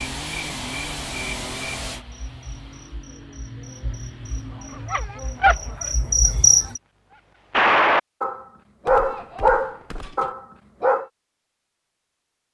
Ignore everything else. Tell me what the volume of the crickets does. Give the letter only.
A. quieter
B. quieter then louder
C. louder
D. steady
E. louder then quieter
B.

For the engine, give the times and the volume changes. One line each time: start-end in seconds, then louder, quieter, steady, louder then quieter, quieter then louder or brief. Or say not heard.
0.0-5.0 quieter.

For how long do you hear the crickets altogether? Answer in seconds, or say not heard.
7 s.